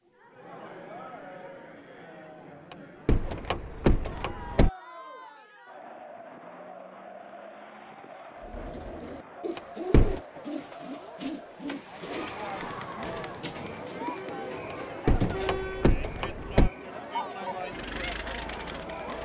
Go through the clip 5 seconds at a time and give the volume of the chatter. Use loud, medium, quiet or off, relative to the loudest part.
medium, medium, loud, loud.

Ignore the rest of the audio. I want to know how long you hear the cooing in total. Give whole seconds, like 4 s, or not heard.
7 s.